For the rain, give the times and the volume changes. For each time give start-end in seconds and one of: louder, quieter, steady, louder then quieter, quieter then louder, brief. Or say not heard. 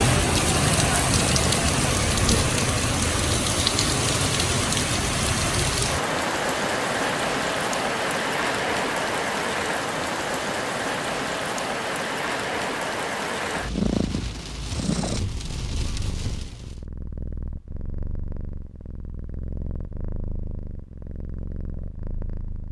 0.0-16.9 quieter.